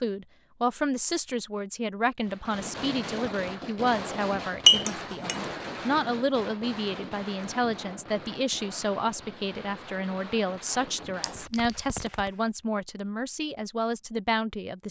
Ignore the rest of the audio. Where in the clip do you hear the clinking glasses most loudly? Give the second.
5 s.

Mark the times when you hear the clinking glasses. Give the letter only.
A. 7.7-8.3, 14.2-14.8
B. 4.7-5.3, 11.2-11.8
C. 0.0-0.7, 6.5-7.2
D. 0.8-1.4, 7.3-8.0
B.